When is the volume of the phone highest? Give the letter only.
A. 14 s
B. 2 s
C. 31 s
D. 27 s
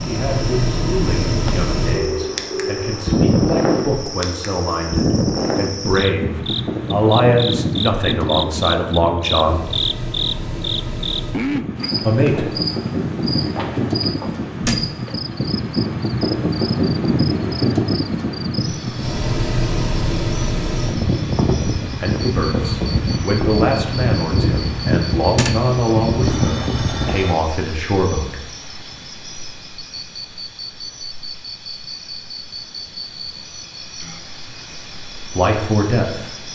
B.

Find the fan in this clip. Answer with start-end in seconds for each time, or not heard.
0.0-27.2.